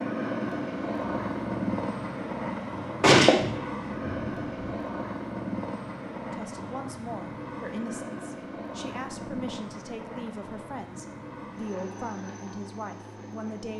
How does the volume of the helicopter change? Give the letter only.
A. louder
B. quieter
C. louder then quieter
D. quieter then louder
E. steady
B.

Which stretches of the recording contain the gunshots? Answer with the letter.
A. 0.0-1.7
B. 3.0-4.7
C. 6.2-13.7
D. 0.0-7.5
B.